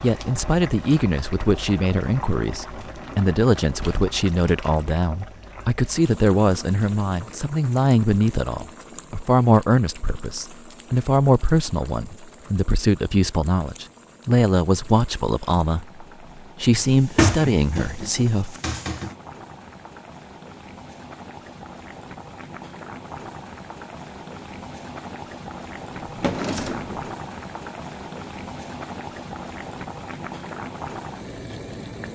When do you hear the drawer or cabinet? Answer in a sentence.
The drawer or cabinet can be heard from 2.8 to 4.0 s, from 16.7 to 19.1 s and from 26.0 to 27.1 s.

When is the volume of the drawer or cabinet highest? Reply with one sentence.
The loudest moment of the drawer or cabinet is at 17 seconds.